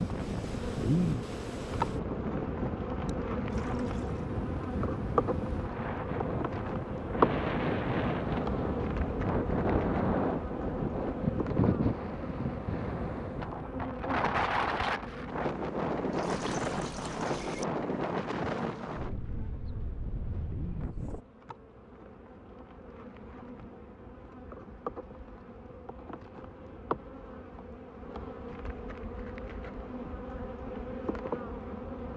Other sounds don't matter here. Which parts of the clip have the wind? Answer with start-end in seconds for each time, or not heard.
0.0-21.2.